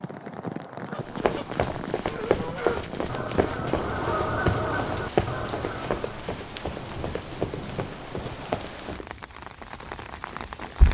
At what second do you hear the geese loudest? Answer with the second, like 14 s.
4 s.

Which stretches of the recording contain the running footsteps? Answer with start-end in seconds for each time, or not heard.
1.0-9.1.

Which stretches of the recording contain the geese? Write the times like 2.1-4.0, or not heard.
0.8-6.2.